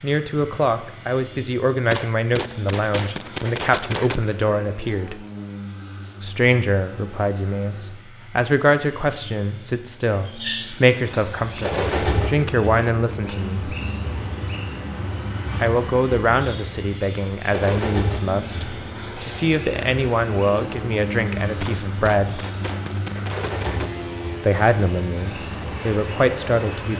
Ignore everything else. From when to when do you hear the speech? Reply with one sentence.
You can hear the speech from 0.0 to 5.2 s, from 6.2 to 13.8 s, from 15.6 to 22.4 s and from 24.4 to 26.9 s.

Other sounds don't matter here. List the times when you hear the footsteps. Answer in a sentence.
You can't hear the footsteps here.